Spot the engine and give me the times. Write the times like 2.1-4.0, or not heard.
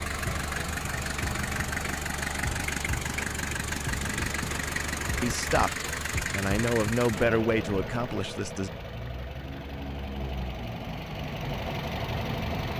0.0-12.7.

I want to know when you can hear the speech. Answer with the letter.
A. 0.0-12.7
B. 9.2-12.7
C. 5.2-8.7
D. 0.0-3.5
C.